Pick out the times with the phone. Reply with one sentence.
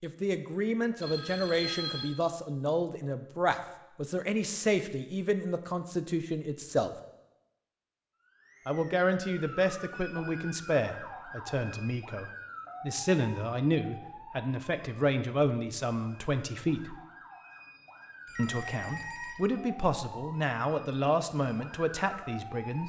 You can hear the phone from 1.0 to 2.1 s, from 9.8 to 10.6 s and from 18.2 to 19.4 s.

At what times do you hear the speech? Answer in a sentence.
You can hear the speech from 0.0 to 7.0 s, from 8.7 to 16.9 s and from 18.4 to 22.8 s.